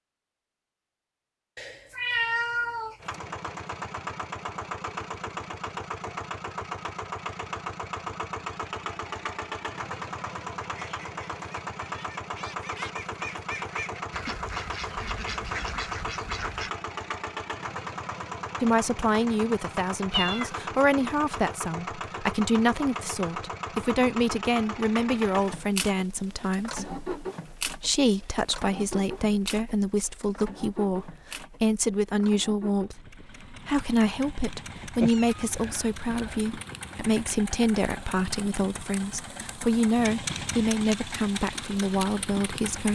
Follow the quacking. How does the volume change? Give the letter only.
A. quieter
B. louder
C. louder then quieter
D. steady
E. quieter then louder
B.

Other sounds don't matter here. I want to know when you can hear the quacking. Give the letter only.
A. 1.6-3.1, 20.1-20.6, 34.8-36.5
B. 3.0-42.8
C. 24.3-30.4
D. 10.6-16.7
D.